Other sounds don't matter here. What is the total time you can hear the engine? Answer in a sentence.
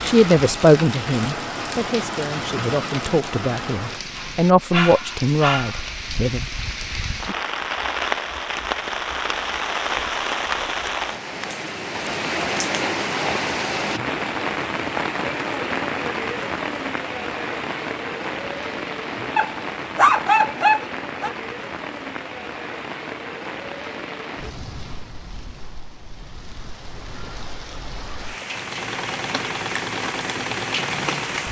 You can hear the engine for 3 seconds altogether.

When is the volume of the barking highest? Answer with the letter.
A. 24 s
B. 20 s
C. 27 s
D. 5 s
B.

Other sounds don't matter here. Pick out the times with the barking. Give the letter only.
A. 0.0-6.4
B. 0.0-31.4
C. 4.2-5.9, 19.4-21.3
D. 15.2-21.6
C.